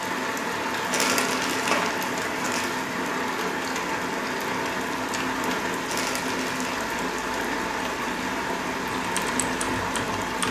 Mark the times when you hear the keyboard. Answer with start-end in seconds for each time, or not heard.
8.9-10.4.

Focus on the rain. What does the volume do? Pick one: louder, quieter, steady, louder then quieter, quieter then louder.
steady.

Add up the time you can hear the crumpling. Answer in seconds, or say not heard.
3 s.